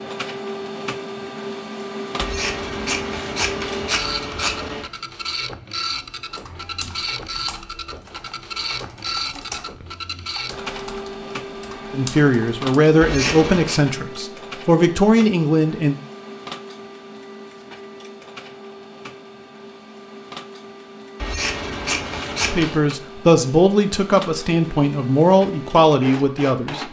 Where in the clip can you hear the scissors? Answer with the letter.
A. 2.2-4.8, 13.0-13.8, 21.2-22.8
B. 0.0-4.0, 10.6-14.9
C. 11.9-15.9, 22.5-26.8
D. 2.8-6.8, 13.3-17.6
A.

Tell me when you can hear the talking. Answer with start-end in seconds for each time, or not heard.
11.9-15.9, 22.5-26.8.